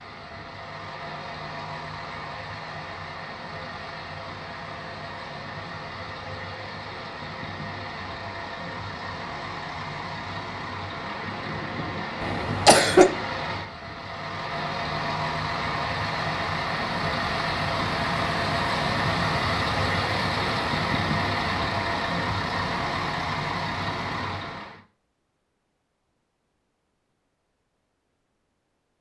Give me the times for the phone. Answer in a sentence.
The phone can't be heard in this clip.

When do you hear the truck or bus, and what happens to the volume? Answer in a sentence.
You can hear the truck or bus from 0.0 to 24.8 s, getting louder.